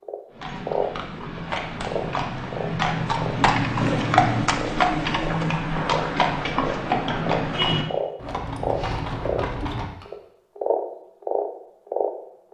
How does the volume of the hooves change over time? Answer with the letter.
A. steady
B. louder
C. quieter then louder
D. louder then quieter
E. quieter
D.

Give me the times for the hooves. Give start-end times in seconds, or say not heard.
0.3-10.1.